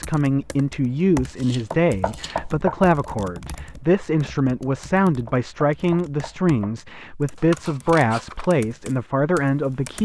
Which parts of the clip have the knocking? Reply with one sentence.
You can hear the knocking from 1.7 to 2.8 s and from 5.2 to 6.8 s.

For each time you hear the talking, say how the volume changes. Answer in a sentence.
The talking can be heard from 0.0 to 10.0 s, at a steady volume.